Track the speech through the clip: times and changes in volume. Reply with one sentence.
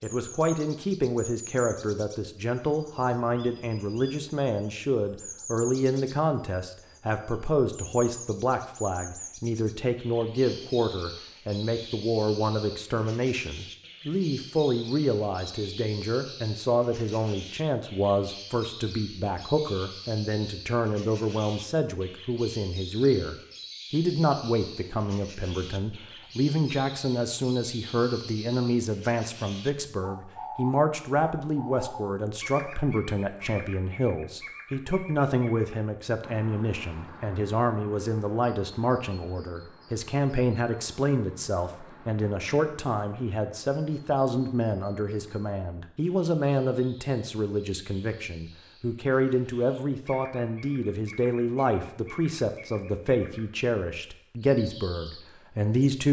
You can hear the speech from 0.0 to 56.0 s, at a steady volume.